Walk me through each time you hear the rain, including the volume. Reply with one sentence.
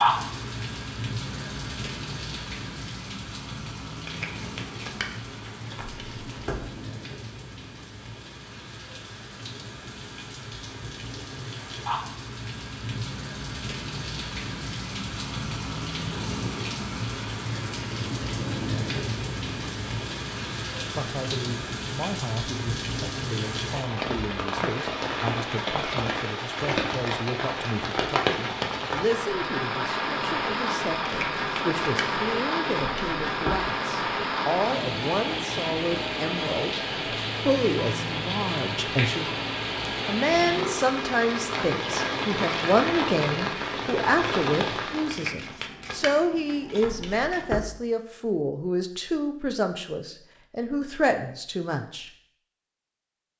You can hear the rain from 0.0 to 45.2 s, getting louder.